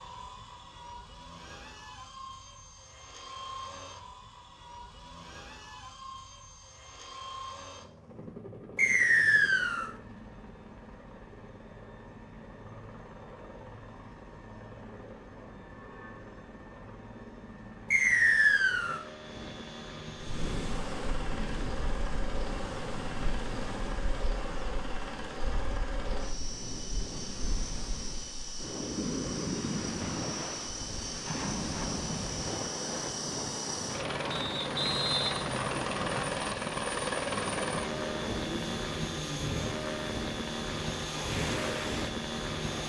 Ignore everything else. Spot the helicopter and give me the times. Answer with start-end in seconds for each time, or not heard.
0.0-42.8.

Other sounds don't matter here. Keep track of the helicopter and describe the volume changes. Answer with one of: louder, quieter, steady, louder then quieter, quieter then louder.
louder.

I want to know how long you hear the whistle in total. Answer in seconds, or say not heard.
4 s.